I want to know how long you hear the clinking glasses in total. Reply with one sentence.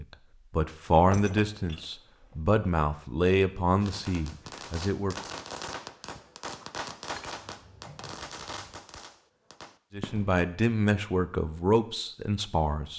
You can hear the clinking glasses for 3 seconds altogether.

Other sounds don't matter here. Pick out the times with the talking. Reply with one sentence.
The talking can be heard from 0.0 to 5.2 s and from 9.9 to 12.9 s.